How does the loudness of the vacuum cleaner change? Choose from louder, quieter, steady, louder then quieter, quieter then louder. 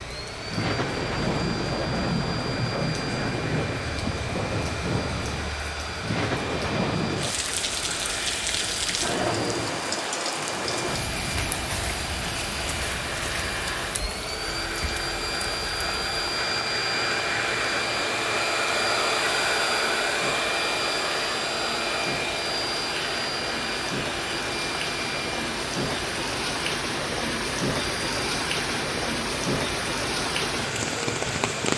louder then quieter.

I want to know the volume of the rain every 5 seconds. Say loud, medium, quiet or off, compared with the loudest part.
loud, loud, medium, medium, medium, loud, loud.